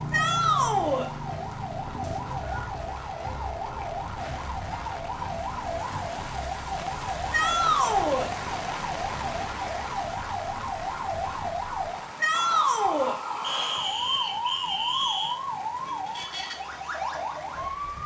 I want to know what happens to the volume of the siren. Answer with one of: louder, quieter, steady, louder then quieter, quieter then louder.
steady.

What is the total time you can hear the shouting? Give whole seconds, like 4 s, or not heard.
3 s.